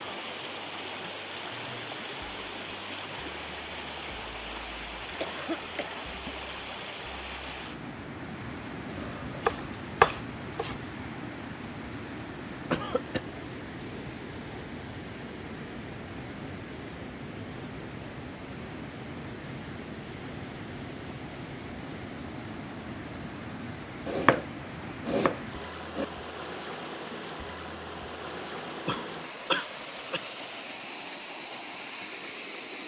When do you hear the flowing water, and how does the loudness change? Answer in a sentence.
You can hear the flowing water from 0.0 to 32.8 s, at a steady volume.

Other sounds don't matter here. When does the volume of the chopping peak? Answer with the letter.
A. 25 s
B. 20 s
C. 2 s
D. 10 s
D.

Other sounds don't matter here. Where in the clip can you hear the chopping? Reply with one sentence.
You can hear the chopping from 8.9 to 10.8 s and from 24.1 to 26.1 s.